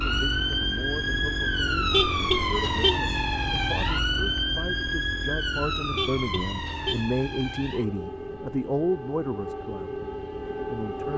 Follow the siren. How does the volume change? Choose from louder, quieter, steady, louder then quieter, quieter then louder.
quieter.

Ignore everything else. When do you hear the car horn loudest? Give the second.
2 s.